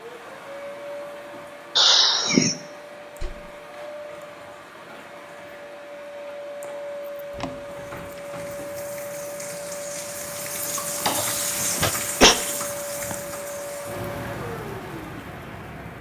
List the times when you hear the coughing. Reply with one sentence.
The coughing can be heard from 1.8 to 2.5 s and from 11.2 to 12.3 s.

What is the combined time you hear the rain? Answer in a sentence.
You can hear the rain for 16 seconds altogether.